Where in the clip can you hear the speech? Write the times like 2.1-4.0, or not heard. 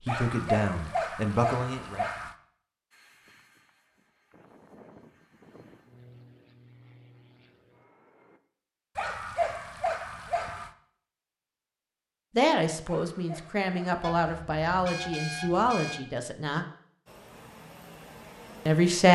0.1-2.0, 12.3-16.6, 18.6-19.1.